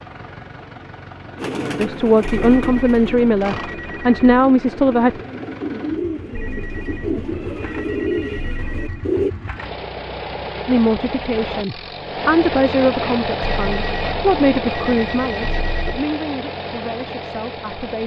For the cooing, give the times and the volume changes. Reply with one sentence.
The cooing can be heard from 1.4 to 9.3 s, getting quieter then louder.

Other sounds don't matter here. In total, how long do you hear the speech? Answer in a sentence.
You can hear the speech for 11 seconds altogether.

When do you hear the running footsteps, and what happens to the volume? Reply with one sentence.
You can't hear the running footsteps here.